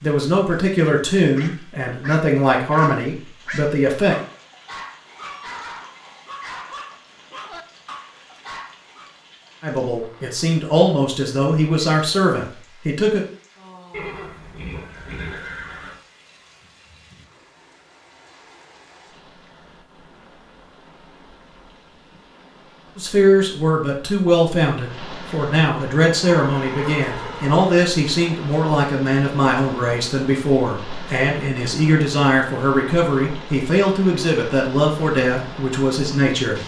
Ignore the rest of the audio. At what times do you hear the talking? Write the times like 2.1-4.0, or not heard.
0.0-4.2, 9.6-13.2, 22.9-36.6.